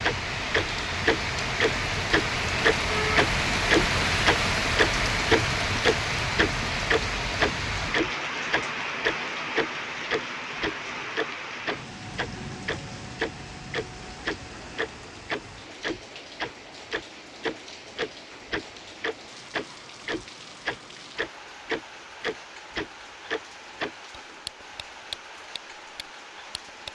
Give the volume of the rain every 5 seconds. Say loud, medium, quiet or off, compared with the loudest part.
loud, loud, medium, quiet, quiet, quiet.